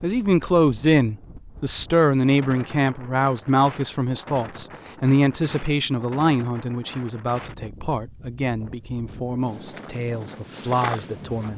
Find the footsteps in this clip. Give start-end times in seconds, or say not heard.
9.4-11.5.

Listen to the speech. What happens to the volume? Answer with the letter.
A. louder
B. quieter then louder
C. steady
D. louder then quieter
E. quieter
E.